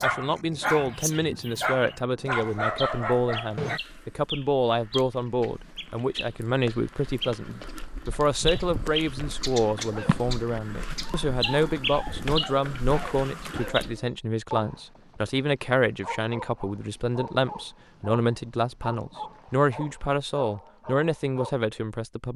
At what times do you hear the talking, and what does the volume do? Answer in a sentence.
The talking can be heard from 0.0 to 22.3 s, at a steady volume.